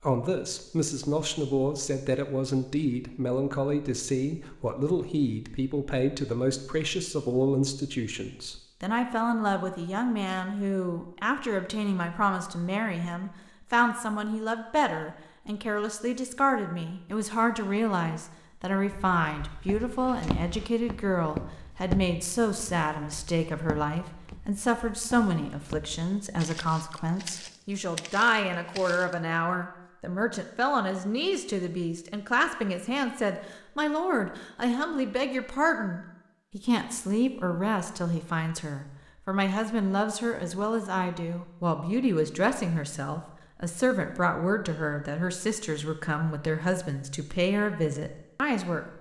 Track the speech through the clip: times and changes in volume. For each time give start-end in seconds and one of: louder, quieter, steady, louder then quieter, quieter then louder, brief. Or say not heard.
0.0-48.9 steady.